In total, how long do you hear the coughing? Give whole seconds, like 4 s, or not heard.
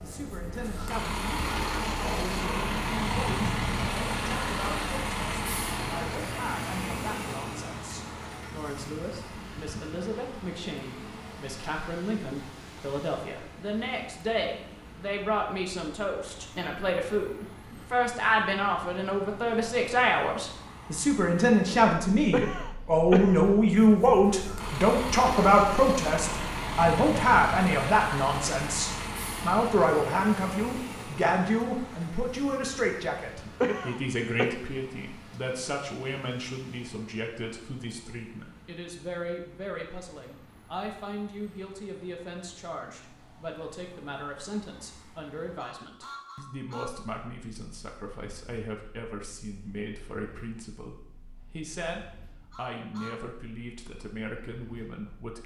2 s.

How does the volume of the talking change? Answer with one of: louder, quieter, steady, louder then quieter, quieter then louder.
louder then quieter.